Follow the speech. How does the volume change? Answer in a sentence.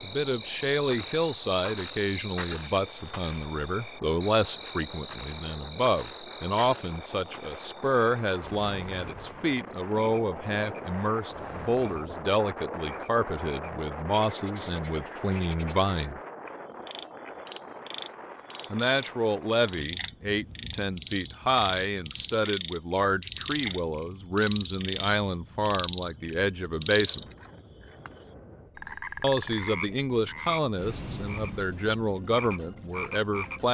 The loudness of the speech stays about the same.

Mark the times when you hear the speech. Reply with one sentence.
You can hear the speech from 0.0 to 16.2 s, from 18.7 to 27.3 s and from 29.2 to 33.6 s.